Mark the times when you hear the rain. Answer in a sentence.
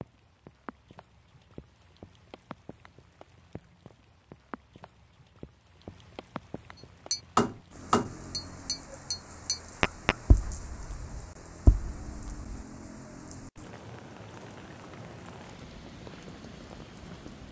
You can hear the rain from 0.0 to 17.4 s.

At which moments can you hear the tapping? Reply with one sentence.
You can hear the tapping from 7.1 to 12.6 s.